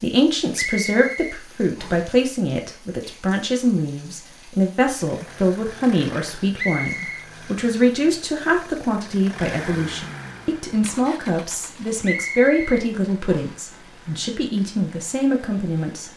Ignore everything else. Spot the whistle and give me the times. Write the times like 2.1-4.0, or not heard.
0.6-1.9, 6.5-7.2, 12.0-13.6.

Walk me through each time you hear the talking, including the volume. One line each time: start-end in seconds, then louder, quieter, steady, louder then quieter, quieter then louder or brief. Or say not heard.
0.0-16.1 steady.